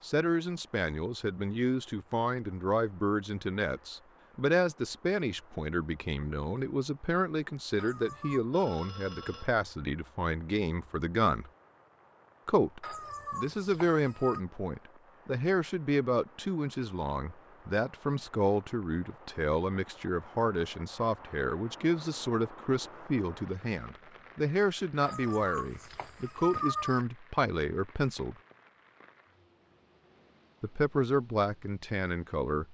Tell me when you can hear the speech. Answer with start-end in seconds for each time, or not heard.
0.0-11.5, 12.4-28.4, 30.6-32.6.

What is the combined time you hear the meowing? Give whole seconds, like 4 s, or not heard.
4 s.